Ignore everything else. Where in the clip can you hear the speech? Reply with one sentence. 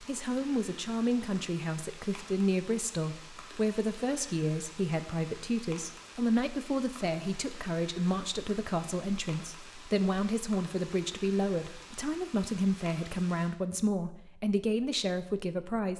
The speech can be heard from 0.0 to 15.9 s.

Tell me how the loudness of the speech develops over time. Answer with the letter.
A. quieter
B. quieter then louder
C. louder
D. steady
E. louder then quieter
D.